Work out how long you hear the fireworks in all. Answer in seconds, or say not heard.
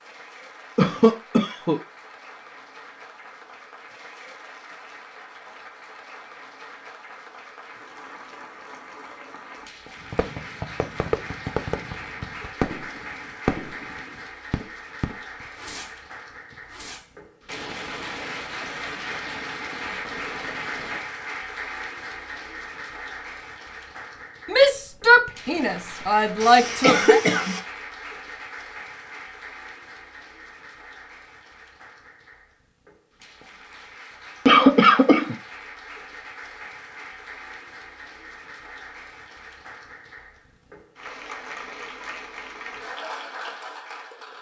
11 s.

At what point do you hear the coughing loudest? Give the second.
35 s.